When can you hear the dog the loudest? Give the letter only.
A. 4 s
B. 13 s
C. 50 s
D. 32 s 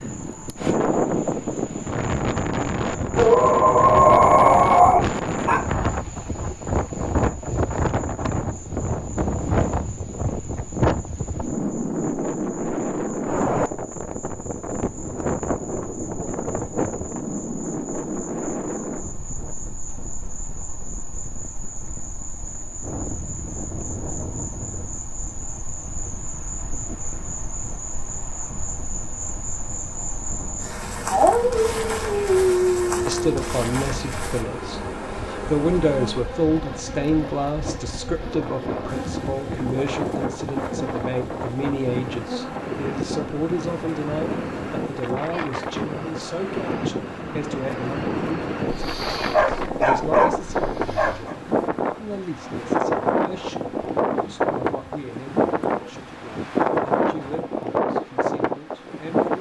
A.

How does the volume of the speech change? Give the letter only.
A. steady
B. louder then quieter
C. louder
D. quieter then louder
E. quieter
E.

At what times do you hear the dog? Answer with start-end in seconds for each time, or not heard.
3.1-5.6, 31.1-33.5, 48.6-51.4.